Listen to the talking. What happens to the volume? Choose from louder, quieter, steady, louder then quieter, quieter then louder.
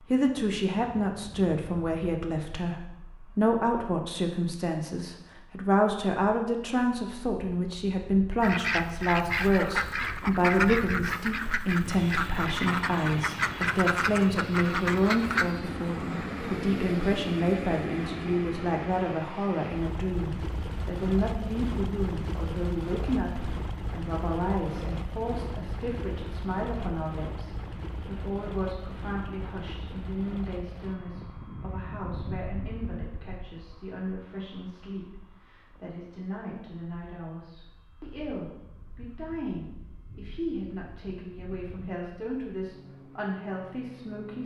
quieter.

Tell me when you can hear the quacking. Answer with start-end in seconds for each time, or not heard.
8.4-15.6.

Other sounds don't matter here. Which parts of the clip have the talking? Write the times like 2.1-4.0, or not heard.
0.1-44.4.